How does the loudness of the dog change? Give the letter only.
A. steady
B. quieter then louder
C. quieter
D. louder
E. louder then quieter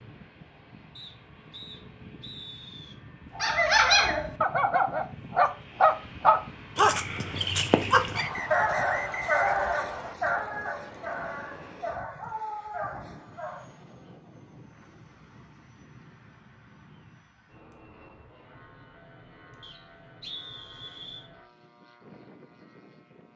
C.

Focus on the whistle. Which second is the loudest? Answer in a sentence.
The loudest moment of the whistle is at 9 seconds.